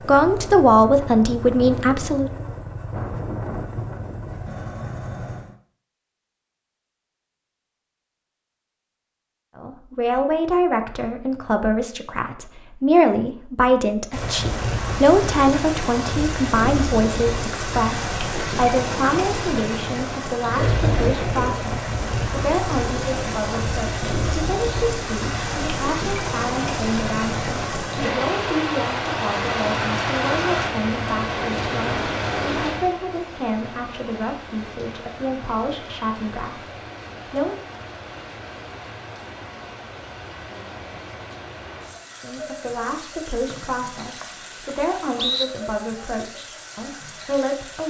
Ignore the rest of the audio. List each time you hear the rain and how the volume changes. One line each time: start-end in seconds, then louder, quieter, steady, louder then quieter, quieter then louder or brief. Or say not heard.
14.1-47.8 quieter.